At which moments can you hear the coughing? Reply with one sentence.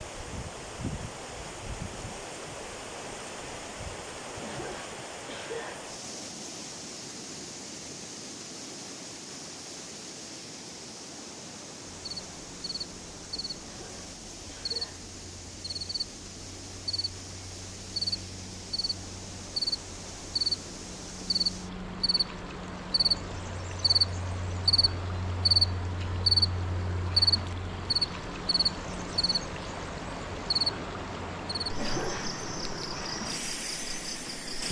You can hear the coughing from 4.4 to 5.8 s, from 13.6 to 15.1 s and from 31.8 to 32.4 s.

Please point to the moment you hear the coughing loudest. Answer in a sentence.
The volume of the coughing peaks at 32 seconds.